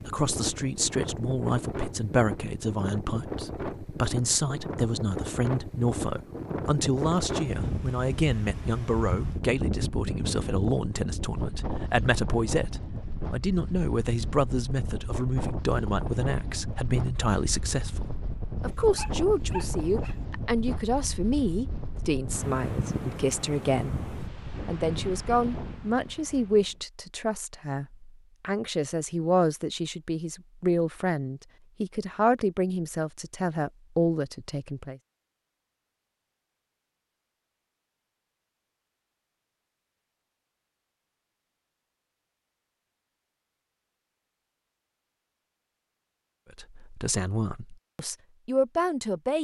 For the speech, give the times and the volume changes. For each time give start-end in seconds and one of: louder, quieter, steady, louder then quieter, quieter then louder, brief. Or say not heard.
0.0-35.0 steady
46.5-49.3 brief.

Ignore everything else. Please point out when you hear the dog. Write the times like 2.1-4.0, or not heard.
18.9-20.1.